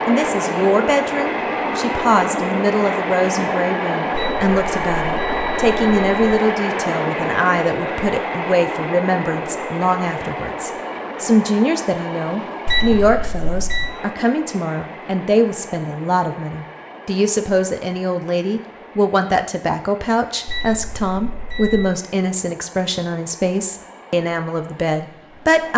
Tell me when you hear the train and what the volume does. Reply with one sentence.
The train can be heard from 0.0 to 25.7 s, getting quieter.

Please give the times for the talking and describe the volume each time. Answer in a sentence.
You can hear the talking from 0.1 to 25.7 s, at a steady volume.